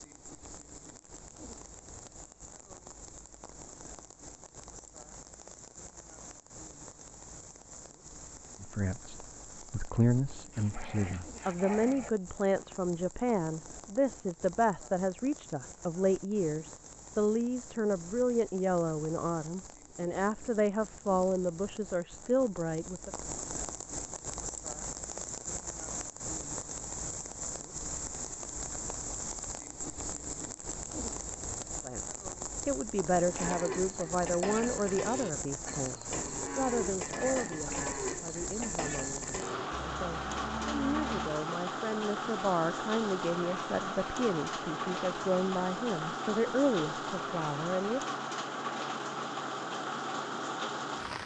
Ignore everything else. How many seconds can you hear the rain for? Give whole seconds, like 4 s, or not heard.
51 s.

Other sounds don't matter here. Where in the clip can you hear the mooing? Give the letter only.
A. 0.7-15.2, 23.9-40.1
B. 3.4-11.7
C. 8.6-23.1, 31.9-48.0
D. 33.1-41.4
D.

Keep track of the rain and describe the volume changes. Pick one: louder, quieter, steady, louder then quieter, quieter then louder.
louder.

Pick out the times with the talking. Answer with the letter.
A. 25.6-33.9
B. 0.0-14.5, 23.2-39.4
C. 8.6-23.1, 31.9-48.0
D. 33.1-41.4
C.